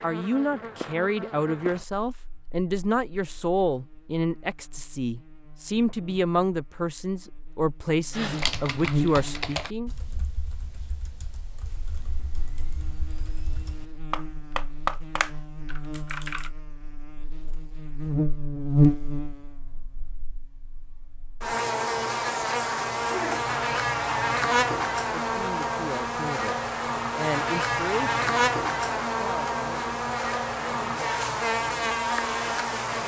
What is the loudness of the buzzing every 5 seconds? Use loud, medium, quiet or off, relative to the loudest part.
quiet, medium, quiet, loud, loud, loud, loud.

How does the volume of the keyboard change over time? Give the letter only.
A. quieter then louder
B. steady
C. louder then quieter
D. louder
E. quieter
A.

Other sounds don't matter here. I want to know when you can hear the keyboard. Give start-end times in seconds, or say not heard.
8.1-16.5.